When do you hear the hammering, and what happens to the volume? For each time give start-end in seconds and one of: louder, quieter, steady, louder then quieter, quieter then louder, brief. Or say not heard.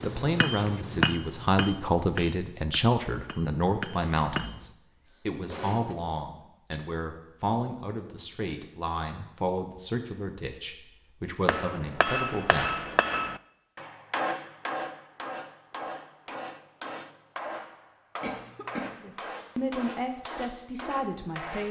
0.0-4.6 quieter then louder
11.4-21.6 quieter.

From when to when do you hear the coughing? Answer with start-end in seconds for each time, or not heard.
5.1-6.0, 18.2-18.9.